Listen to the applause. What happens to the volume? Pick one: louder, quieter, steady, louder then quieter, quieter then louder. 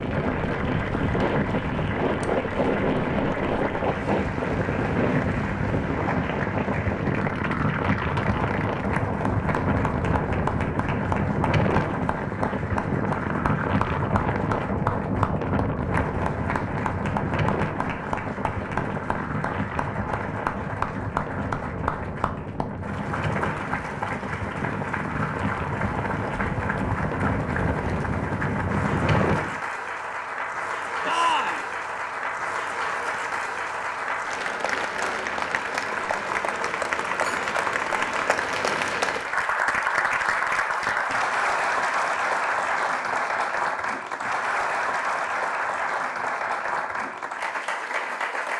louder.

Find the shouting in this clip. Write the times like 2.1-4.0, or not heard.
31.1-31.6.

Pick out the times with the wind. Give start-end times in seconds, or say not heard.
0.0-29.6.